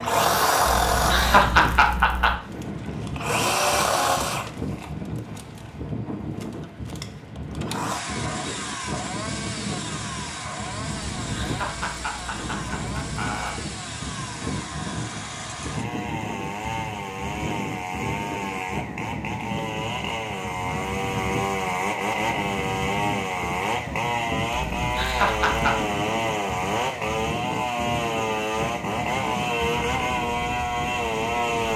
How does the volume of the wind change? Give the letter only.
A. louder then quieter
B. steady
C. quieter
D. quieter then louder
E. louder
B.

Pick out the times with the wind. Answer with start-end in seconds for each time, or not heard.
0.0-31.7.